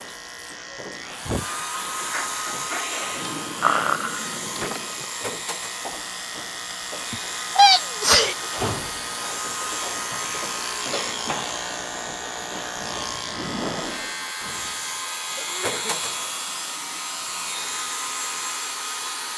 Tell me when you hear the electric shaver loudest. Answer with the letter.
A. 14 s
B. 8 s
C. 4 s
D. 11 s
D.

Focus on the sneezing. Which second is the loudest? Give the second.
8 s.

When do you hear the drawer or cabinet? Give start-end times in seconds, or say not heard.
3.2-5.1.